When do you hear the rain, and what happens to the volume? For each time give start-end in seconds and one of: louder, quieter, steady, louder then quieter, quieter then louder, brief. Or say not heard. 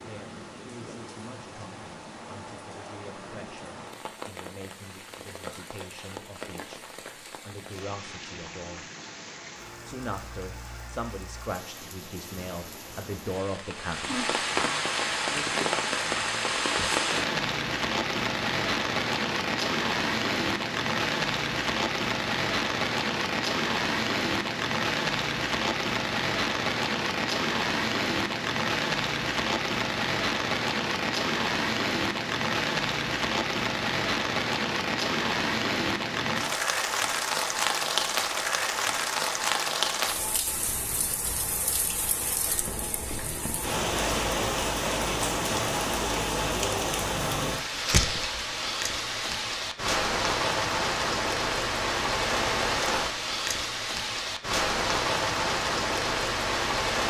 0.0-57.0 louder.